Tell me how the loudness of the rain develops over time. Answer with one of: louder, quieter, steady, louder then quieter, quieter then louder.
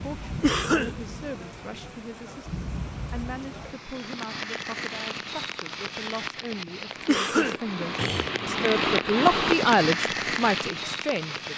louder.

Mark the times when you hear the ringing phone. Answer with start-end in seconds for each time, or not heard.
not heard.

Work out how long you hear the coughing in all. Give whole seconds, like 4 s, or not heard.
2 s.